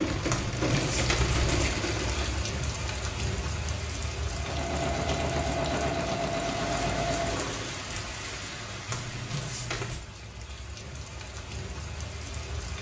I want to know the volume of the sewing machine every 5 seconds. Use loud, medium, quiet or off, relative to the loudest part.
loud, loud, off.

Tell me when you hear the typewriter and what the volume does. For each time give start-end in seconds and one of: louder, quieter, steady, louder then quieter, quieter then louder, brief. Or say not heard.
not heard.